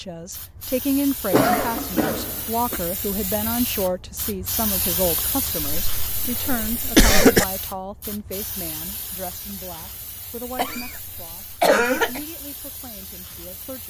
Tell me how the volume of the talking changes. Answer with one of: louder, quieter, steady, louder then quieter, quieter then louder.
quieter.